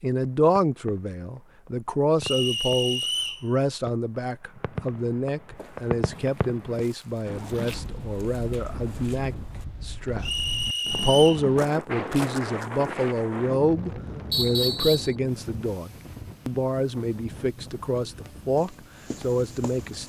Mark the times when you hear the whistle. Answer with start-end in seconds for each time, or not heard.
2.2-3.5, 10.2-11.4, 14.3-15.2.